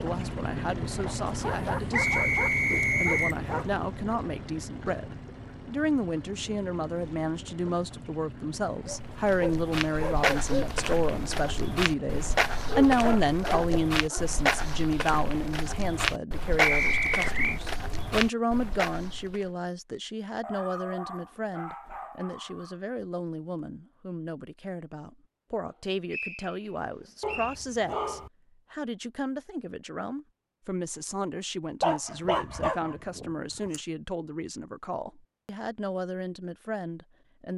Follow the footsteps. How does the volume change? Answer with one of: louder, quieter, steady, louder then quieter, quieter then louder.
steady.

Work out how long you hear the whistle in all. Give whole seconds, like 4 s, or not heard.
4 s.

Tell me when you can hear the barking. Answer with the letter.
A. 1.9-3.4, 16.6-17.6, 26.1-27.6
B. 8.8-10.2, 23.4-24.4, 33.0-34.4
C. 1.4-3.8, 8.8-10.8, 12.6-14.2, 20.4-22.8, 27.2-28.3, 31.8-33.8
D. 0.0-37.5
C.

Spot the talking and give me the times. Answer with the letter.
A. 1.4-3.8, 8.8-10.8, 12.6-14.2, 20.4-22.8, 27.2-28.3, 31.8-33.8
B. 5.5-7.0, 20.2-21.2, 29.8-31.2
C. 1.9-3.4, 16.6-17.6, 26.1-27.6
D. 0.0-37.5
D.